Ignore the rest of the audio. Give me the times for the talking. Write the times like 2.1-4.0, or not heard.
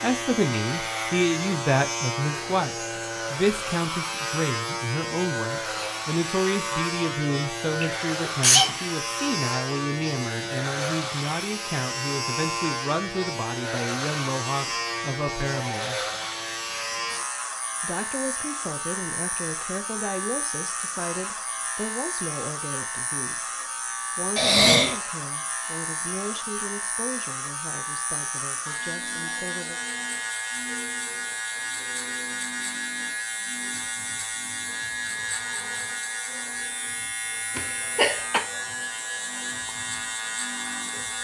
0.0-16.0, 17.8-29.8.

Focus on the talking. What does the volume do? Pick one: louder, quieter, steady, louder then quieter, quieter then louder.
quieter.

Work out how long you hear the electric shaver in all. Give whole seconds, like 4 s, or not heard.
41 s.